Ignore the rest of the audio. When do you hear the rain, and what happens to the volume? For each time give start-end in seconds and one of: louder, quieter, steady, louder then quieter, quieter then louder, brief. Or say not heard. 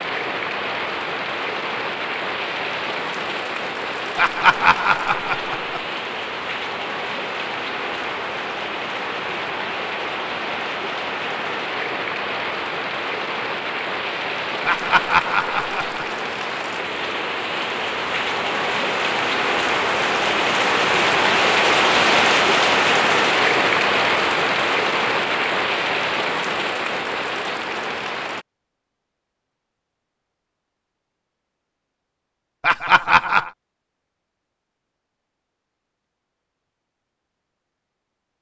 0.0-28.4 louder.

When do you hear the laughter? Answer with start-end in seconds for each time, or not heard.
4.2-5.8, 14.7-16.1, 32.6-33.5.